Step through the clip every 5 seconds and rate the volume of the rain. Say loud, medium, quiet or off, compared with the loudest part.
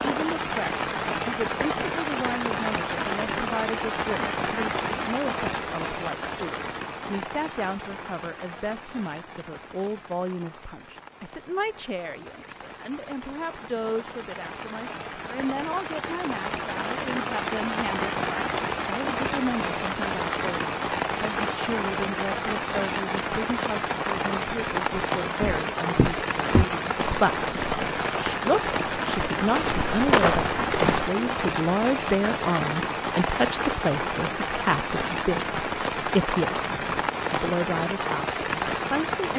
loud, medium, quiet, loud, loud, loud, loud, loud.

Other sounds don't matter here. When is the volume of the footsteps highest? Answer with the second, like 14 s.
30 s.